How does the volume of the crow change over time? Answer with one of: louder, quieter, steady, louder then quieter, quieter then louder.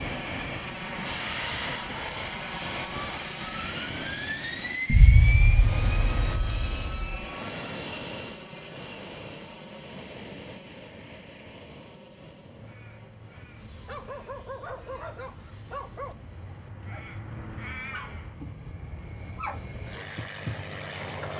louder.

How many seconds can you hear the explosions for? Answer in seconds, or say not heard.
2 s.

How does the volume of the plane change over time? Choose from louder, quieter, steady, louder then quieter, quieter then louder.
quieter then louder.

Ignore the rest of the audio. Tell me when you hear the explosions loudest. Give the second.
5 s.